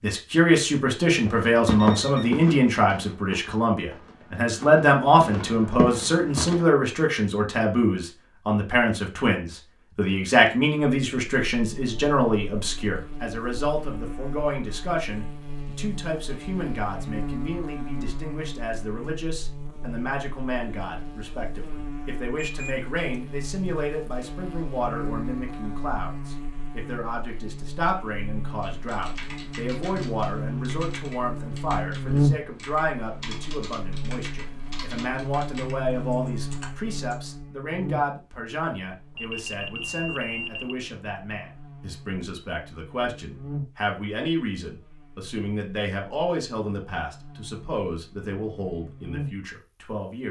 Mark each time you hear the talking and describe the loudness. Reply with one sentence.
The talking can be heard from 0.0 to 50.2 s, getting quieter.